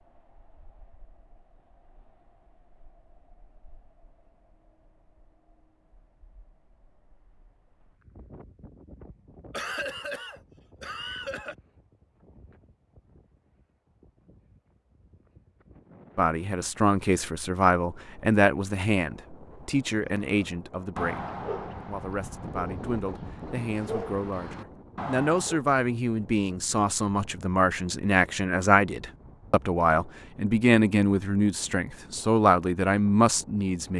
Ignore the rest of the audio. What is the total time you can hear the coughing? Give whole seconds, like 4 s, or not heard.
2 s.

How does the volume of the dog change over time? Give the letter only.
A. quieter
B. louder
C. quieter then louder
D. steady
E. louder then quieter
C.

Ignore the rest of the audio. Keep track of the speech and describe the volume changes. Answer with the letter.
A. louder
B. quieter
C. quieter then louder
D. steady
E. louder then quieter
C.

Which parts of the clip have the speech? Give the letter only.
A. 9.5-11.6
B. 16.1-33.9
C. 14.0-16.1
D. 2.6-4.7
B.